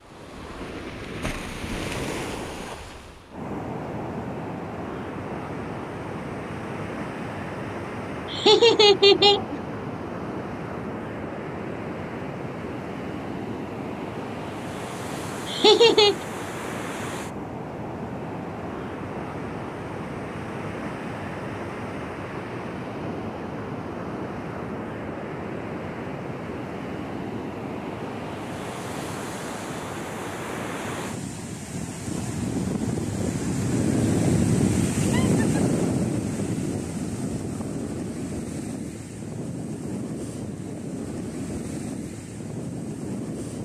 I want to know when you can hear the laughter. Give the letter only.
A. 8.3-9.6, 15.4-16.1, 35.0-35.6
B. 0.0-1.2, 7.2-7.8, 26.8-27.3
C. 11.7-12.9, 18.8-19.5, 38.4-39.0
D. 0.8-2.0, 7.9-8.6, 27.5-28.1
A.